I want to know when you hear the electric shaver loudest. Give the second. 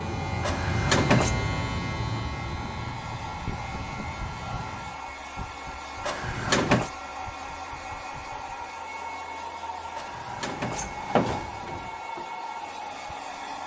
1 s.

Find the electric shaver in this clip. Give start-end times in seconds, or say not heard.
0.0-5.0.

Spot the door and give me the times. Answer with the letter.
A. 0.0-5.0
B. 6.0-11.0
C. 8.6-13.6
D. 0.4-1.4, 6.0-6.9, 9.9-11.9
D.